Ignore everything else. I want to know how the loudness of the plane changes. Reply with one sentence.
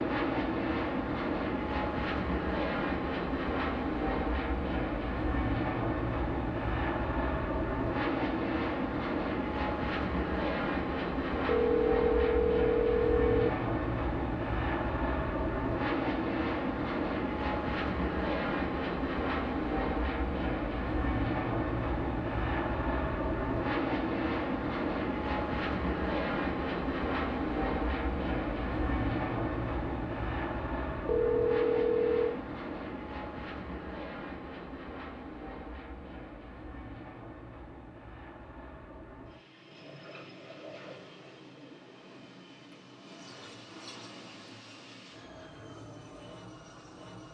The volume of the plane goes down.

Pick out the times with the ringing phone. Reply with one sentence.
The ringing phone can be heard from 11.4 to 13.5 s and from 31.1 to 32.4 s.